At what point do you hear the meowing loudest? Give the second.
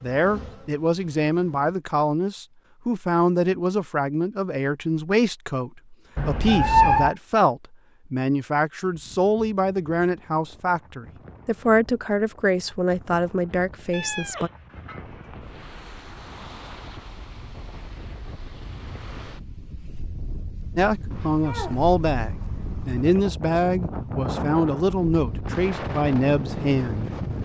7 s.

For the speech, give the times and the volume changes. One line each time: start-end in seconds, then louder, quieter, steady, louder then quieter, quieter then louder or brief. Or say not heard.
0.0-14.5 steady
20.8-27.4 steady.